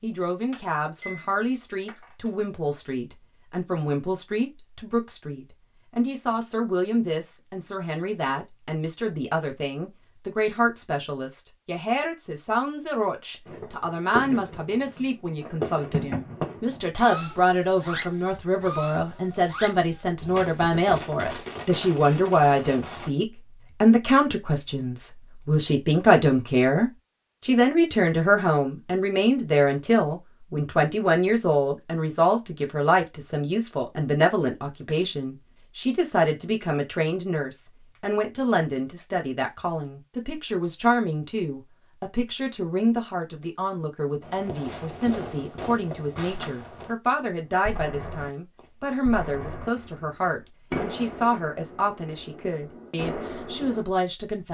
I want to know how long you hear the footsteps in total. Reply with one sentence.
The footsteps can't be heard in this clip.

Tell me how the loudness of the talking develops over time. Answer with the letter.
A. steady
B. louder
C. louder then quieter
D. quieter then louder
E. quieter
C.